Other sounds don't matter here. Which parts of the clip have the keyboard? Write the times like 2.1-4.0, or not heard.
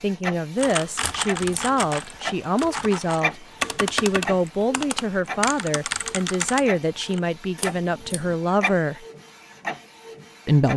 0.6-7.2.